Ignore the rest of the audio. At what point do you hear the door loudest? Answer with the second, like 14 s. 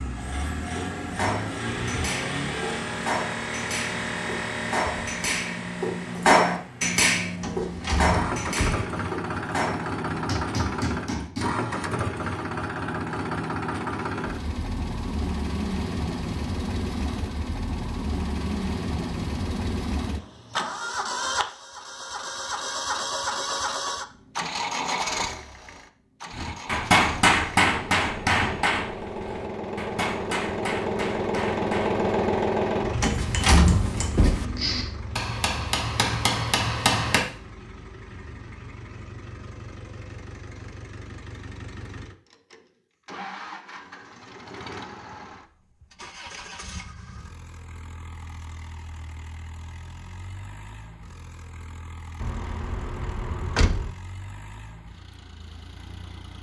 34 s.